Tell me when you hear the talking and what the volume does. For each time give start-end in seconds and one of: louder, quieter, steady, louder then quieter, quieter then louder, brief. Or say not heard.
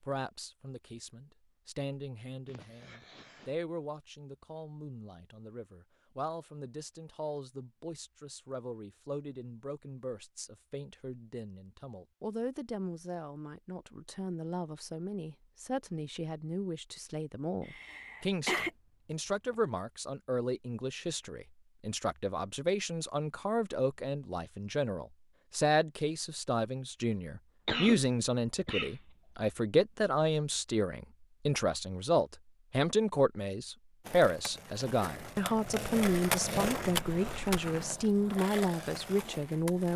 0.0-39.9 louder.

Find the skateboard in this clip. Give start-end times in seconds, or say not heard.
34.0-39.9.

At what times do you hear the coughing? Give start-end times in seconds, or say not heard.
2.5-3.5, 17.6-19.6, 27.6-28.9.